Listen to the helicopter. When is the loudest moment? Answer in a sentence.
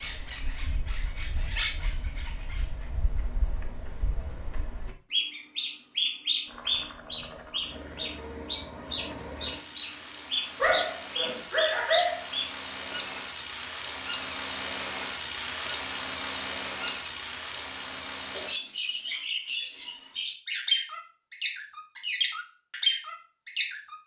The loudest moment of the helicopter is at 15 seconds.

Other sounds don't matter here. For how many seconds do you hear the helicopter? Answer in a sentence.
The helicopter can be heard for 12 seconds in total.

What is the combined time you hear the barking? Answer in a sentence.
The barking can be heard for 2 seconds in total.